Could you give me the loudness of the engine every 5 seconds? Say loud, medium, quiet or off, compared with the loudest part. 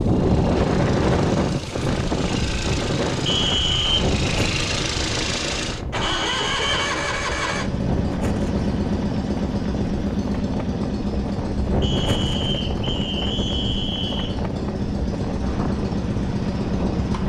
medium, loud, loud, loud.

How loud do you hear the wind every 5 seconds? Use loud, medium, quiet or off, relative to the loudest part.
loud, medium, medium, medium.